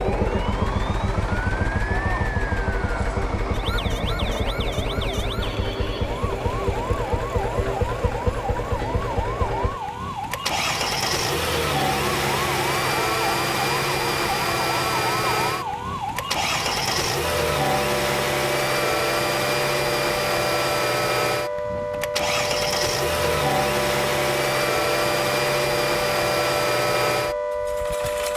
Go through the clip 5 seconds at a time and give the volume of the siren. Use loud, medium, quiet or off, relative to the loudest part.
medium, medium, medium, loud, loud, loud.